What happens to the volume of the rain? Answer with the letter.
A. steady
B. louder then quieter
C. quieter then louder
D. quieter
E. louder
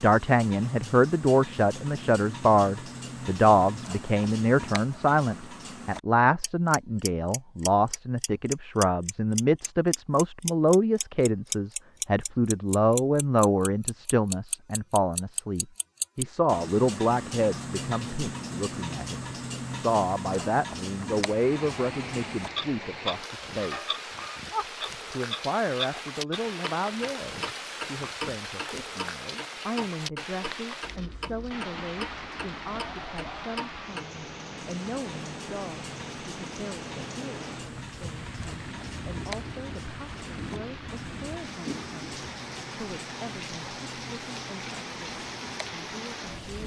A.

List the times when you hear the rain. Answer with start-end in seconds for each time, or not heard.
21.2-46.6.